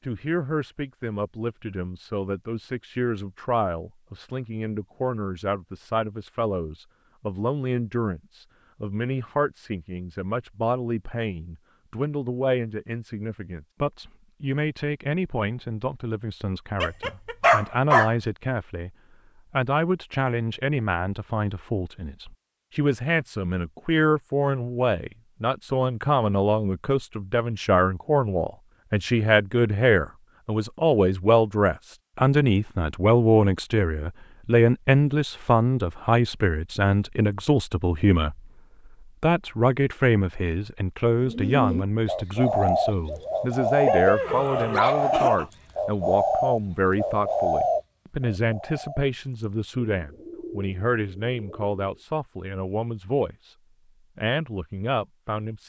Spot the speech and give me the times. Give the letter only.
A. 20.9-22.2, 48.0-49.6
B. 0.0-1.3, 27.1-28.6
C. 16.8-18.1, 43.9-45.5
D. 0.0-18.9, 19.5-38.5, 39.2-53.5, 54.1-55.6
D.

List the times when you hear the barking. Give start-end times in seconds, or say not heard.
16.8-18.1, 43.9-45.5.